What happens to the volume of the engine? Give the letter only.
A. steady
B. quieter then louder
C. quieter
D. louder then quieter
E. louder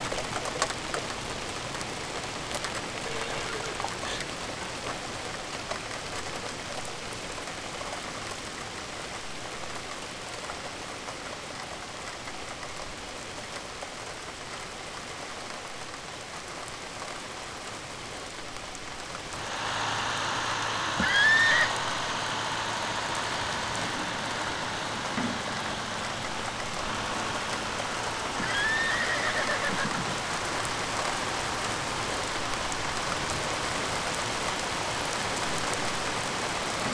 C.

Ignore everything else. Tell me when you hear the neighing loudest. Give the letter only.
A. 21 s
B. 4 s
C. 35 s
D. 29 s
A.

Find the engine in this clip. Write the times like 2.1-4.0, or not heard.
19.2-36.8.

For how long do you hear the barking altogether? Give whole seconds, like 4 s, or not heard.
not heard.